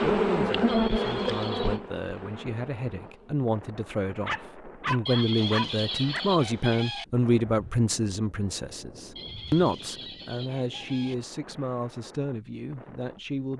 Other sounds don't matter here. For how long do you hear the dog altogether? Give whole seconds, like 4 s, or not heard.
2 s.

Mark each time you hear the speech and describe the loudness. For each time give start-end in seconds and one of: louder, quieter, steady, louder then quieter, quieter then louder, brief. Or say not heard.
0.0-13.5 louder then quieter.